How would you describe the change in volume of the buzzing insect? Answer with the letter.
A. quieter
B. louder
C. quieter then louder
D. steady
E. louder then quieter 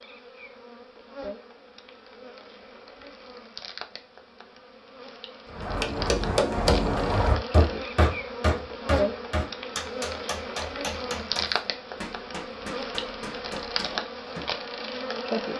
B.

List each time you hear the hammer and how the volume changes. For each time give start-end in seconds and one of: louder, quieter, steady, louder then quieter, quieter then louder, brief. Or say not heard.
5.5-14.6 quieter.